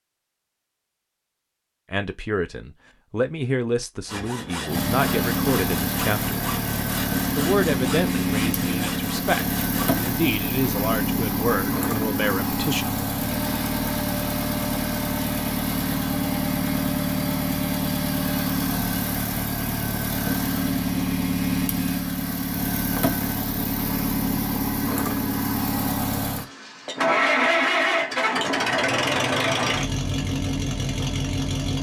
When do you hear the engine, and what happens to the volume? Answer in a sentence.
The engine can be heard from 4.7 to 31.7 s, at a steady volume.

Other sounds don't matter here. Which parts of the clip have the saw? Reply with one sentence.
The saw can be heard from 4.0 to 10.2 s.